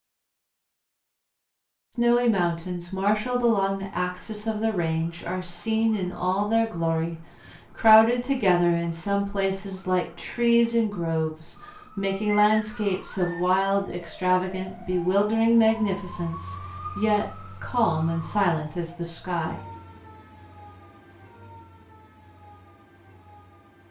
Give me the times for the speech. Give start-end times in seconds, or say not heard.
1.9-19.6.